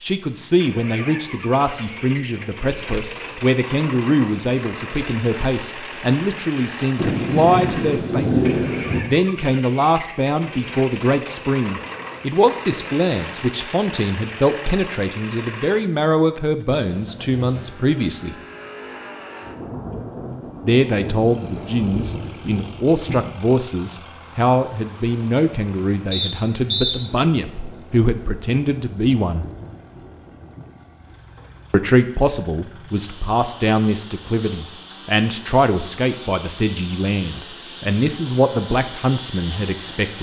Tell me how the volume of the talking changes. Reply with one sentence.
The volume of the talking stays about the same.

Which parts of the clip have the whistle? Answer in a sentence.
The whistle can be heard from 26.1 to 26.9 s.